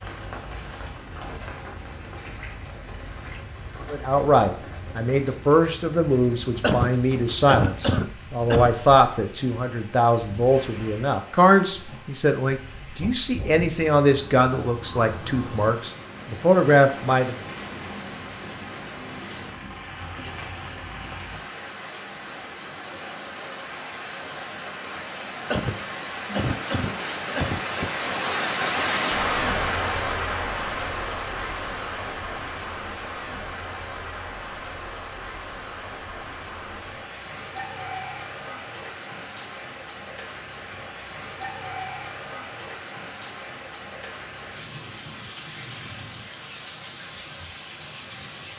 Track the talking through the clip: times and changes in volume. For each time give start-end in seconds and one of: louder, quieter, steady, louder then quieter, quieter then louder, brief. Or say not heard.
3.9-17.4 steady.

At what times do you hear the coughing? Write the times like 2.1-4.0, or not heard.
6.6-8.8, 25.5-27.9.